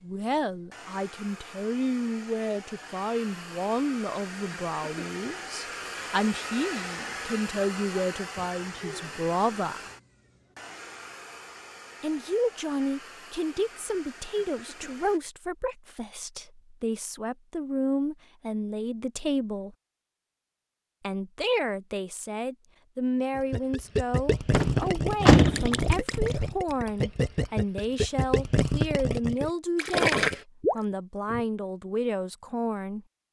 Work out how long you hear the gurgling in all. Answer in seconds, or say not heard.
8 s.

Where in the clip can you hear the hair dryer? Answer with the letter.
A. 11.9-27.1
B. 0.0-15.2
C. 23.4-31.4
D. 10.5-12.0
B.